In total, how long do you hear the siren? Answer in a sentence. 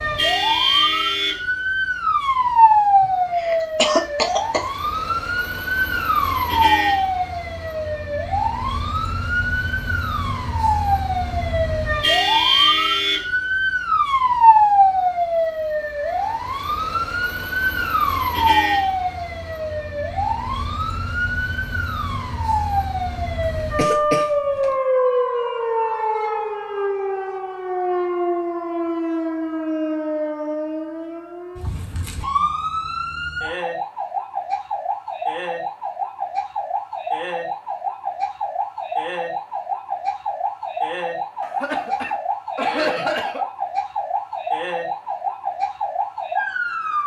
The siren can be heard for 47 seconds in total.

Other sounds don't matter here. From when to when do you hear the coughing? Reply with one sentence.
You can hear the coughing from 3.0 to 4.6 s, from 23.6 to 24.8 s and from 41.4 to 43.5 s.